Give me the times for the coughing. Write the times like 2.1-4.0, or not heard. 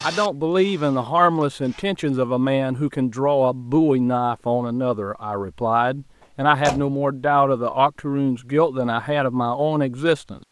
not heard.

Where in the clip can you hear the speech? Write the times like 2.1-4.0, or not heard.
0.0-10.4.